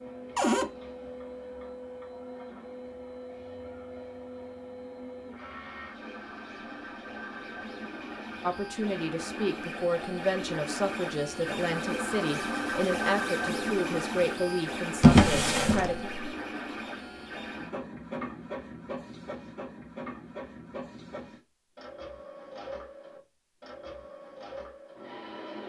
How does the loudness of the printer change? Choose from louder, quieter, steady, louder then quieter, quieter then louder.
louder then quieter.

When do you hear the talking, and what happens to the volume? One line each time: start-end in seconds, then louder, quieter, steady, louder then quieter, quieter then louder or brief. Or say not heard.
8.4-16.1 steady.